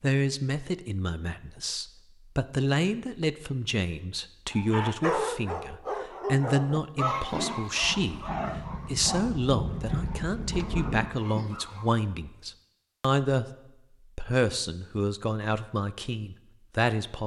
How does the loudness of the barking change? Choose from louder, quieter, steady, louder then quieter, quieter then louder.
quieter.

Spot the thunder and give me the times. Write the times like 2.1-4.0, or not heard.
7.8-11.2.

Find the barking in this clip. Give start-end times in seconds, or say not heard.
4.5-12.1.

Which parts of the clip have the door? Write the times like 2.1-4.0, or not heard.
not heard.